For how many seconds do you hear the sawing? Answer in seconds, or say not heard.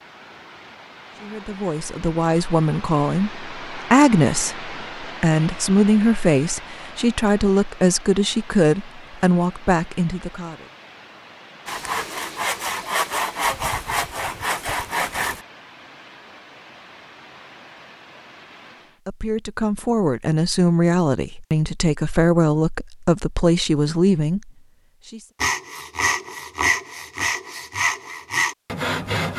8 s.